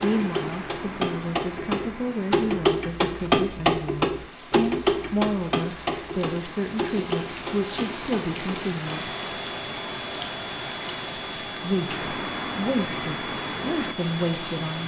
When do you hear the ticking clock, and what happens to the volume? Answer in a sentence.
The ticking clock can be heard from 0.0 to 14.8 s, getting quieter.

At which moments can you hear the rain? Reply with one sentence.
The rain can be heard from 0.0 to 14.8 s.